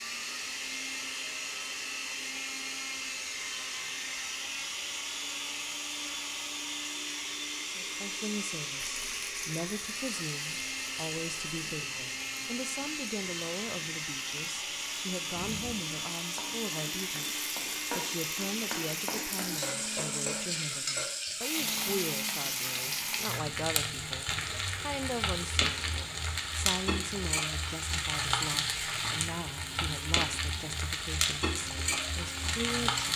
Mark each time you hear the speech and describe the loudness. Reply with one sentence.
The speech can be heard from 7.7 to 33.0 s, at a steady volume.